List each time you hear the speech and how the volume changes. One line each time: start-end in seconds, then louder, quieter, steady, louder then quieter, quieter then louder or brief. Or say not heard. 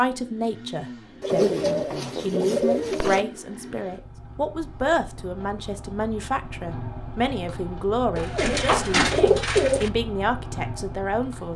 0.0-11.5 steady.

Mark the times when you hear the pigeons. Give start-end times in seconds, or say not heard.
1.2-3.2, 8.2-9.9.